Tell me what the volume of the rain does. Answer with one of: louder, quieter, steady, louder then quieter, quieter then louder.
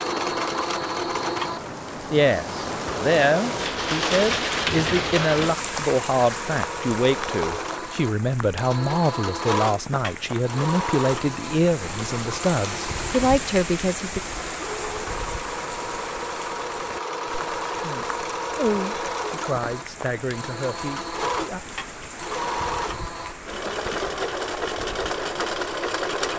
quieter.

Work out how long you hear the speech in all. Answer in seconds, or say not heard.
16 s.